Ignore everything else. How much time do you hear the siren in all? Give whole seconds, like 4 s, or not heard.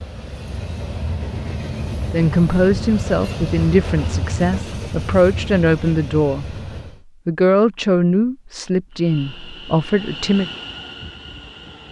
not heard.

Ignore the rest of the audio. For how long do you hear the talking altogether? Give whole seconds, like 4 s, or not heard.
8 s.